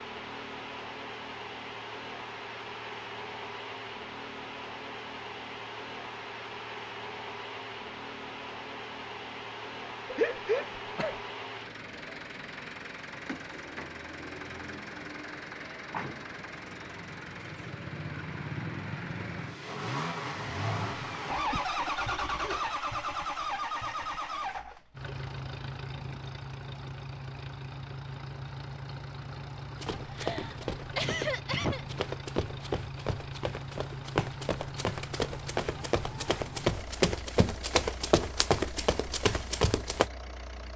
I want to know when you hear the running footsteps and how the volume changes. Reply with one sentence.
You can hear the running footsteps from 29.8 to 40.1 s, getting louder.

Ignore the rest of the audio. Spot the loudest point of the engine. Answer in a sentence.
The loudest moment of the engine is at 22 seconds.